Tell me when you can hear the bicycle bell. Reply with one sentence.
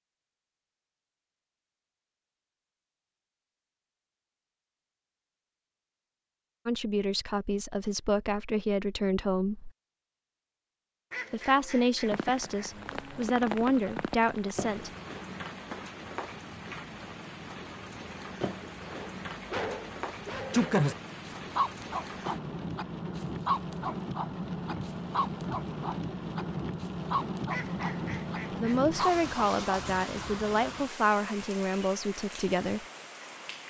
You can't hear the bicycle bell here.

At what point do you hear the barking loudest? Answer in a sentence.
The loudest moment of the barking is at 21 seconds.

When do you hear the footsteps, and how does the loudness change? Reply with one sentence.
The footsteps can't be heard in this clip.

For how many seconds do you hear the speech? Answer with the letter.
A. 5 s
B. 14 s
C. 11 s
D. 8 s
C.